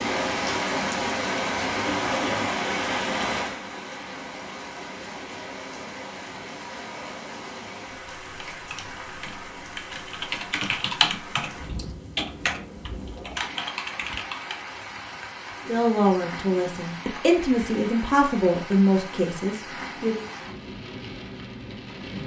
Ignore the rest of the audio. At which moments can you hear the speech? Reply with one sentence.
You can hear the speech from 15.7 to 20.2 s.